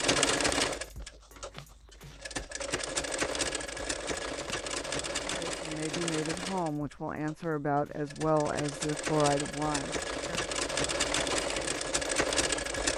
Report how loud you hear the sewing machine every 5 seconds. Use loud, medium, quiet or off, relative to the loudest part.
loud, medium, loud.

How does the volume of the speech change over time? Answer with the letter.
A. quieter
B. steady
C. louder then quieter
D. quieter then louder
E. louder
E.